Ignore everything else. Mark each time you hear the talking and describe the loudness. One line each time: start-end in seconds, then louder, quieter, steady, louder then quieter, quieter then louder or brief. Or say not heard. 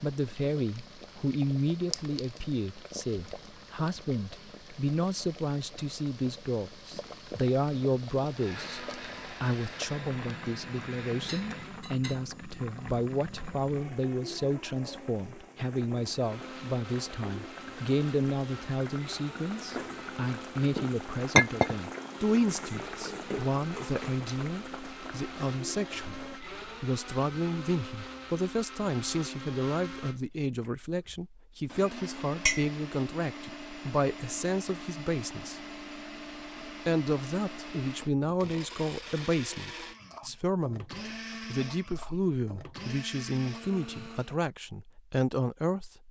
0.0-35.6 steady
36.6-46.0 steady.